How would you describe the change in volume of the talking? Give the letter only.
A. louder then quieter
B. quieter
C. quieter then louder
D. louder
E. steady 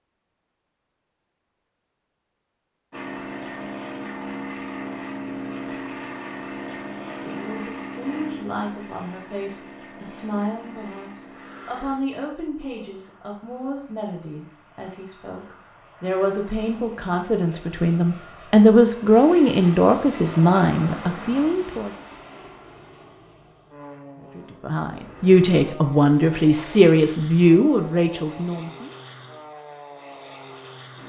D.